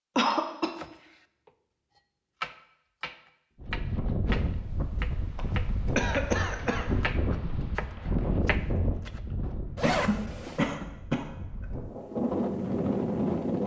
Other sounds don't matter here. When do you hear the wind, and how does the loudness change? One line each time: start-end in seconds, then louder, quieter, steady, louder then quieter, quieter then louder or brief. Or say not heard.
3.6-13.6 quieter then louder.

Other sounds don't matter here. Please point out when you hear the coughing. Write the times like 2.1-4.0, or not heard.
0.1-0.7, 6.0-6.8, 9.8-11.7.